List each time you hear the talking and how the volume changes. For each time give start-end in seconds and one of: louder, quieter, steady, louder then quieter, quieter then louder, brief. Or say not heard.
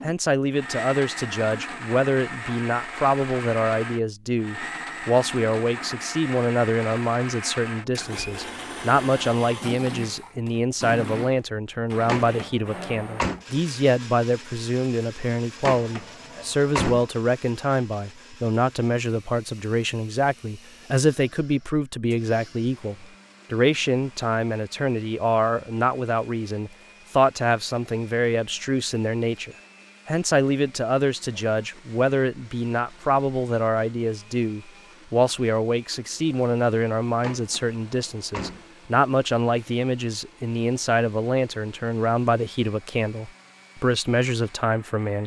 0.0-45.2 steady.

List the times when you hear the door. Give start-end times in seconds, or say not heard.
12.1-13.4, 15.7-17.1, 37.2-38.6.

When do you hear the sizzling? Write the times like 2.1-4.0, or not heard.
not heard.